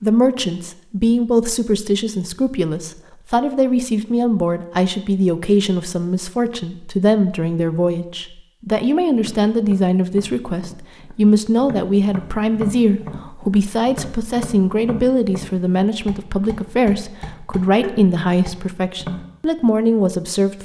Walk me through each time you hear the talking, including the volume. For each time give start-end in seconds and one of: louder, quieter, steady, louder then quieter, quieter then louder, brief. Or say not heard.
0.0-20.5 steady.